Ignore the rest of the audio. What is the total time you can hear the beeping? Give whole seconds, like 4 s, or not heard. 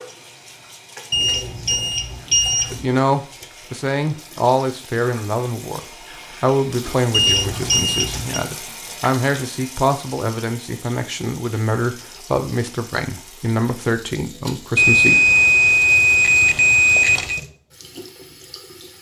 6 s.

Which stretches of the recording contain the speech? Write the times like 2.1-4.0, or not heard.
2.7-5.8, 6.4-15.3.